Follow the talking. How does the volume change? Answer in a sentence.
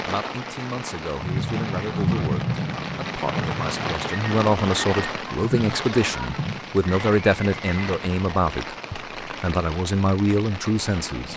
The loudness of the talking goes up.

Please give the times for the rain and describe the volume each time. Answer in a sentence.
You can hear the rain from 0.0 to 11.3 s, getting quieter.